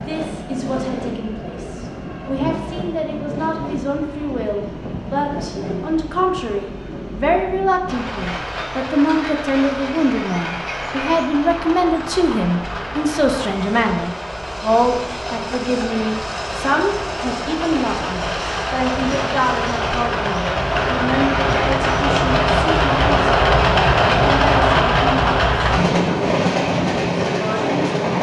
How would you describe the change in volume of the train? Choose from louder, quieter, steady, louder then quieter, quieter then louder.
louder.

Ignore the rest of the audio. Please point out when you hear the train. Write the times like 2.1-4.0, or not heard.
0.0-28.1.